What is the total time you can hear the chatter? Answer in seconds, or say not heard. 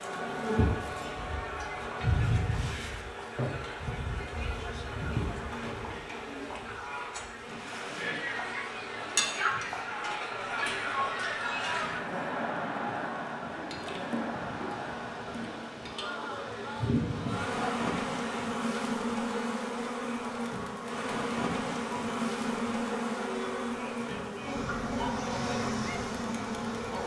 27 s.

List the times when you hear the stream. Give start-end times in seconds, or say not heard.
not heard.